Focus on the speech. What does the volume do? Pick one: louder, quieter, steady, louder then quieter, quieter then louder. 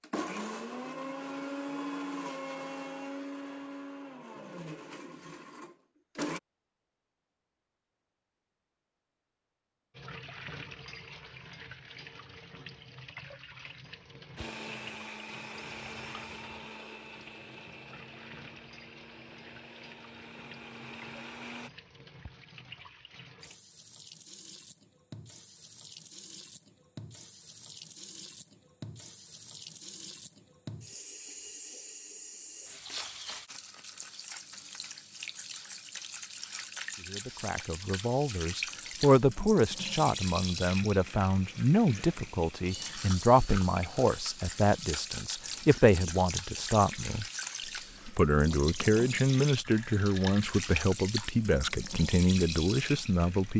steady.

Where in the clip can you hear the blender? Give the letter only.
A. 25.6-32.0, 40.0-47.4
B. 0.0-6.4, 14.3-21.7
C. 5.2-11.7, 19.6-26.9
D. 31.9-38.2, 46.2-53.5
B.